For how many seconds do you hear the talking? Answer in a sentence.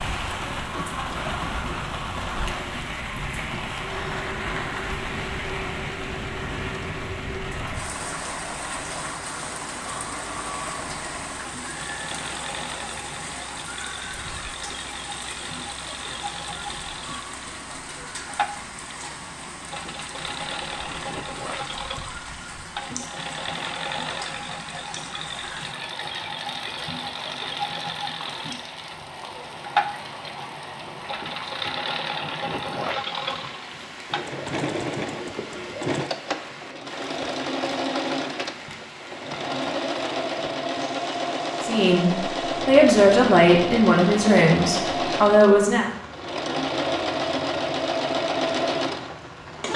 The talking can be heard for 4 seconds in total.